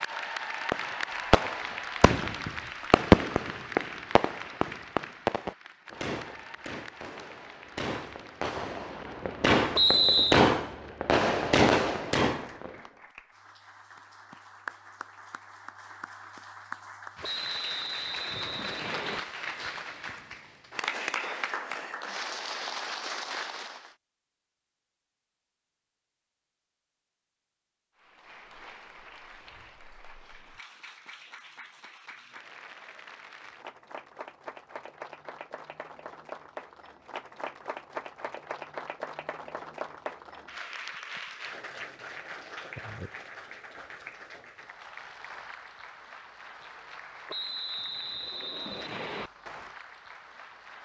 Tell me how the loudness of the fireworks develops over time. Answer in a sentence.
The volume of the fireworks goes down, then up.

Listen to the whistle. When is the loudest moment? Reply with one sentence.
The loudest moment of the whistle is at 10 seconds.